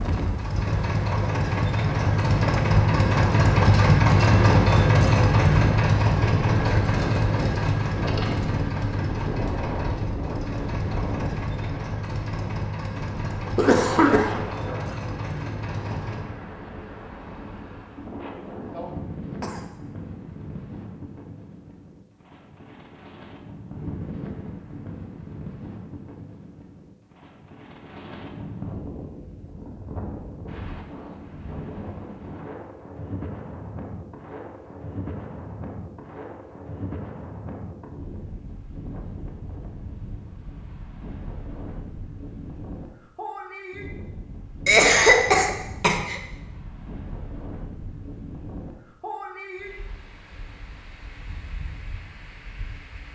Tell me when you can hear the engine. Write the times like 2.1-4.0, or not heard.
0.0-16.3.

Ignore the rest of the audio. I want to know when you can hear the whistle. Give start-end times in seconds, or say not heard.
not heard.